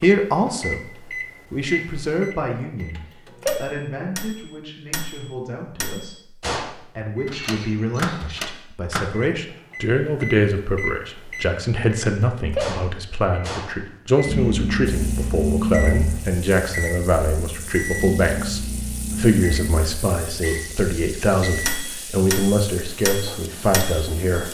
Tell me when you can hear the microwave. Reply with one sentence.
The microwave can be heard from 0.0 to 24.1 s.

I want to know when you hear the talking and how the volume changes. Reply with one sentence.
The talking can be heard briefly from 0.0 to 0.8 s; and from 1.5 to 24.4 s, getting louder.